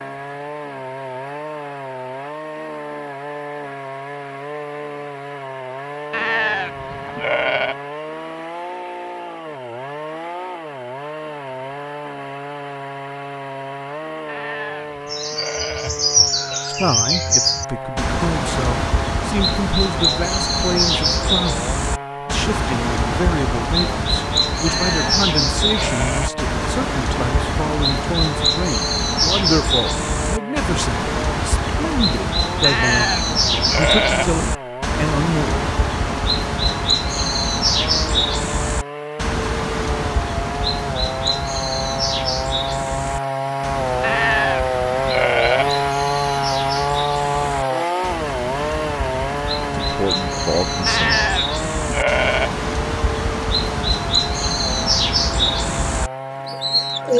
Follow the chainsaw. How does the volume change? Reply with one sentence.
The volume of the chainsaw goes up.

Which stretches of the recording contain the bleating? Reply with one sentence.
You can hear the bleating from 6.1 to 7.8 s, from 14.2 to 16.0 s, from 24.6 to 26.4 s, from 32.6 to 34.4 s, from 44.0 to 45.8 s and from 50.9 to 52.6 s.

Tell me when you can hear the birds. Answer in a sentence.
The birds can be heard from 15.1 to 57.1 s.